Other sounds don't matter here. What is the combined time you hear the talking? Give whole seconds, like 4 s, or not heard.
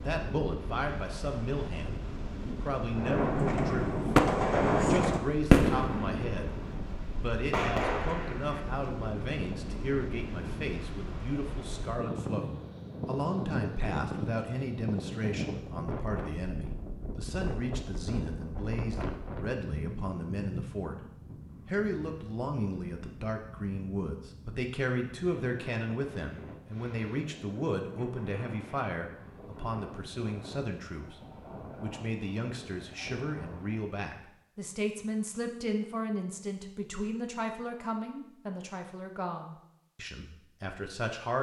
41 s.